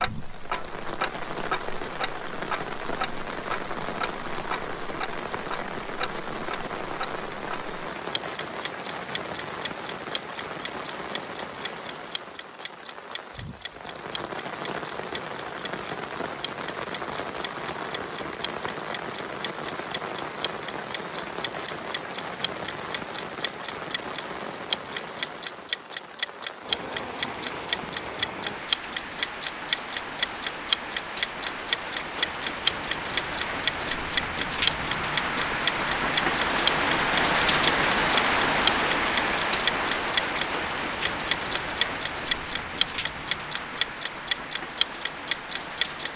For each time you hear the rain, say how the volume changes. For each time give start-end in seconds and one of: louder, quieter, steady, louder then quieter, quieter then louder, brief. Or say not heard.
0.0-46.1 louder.